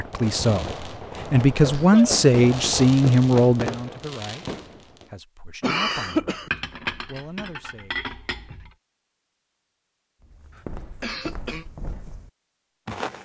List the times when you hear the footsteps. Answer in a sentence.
You can hear the footsteps from 10.2 to 13.2 s.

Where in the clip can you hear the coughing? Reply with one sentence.
You can hear the coughing from 1.5 to 2.3 s, from 5.6 to 6.5 s and from 11.0 to 11.7 s.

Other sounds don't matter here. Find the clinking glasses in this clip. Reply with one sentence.
The clinking glasses can be heard from 6.5 to 8.7 s.